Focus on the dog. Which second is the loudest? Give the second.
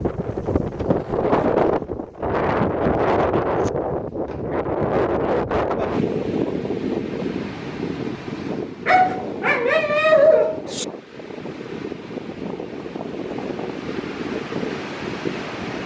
10 s.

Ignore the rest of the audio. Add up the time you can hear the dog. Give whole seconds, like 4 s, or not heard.
3 s.